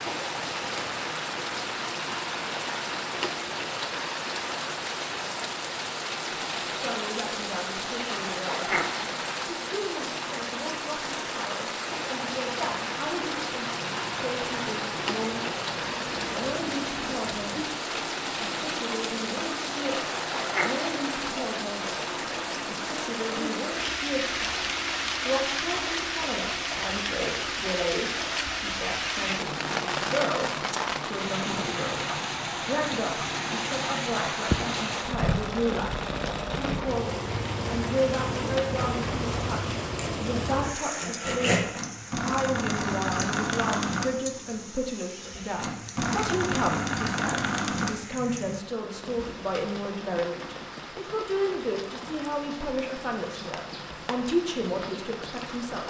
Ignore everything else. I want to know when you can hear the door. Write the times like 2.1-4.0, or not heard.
not heard.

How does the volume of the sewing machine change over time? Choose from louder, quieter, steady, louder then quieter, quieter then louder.
louder.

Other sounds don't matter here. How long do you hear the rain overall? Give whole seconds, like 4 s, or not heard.
56 s.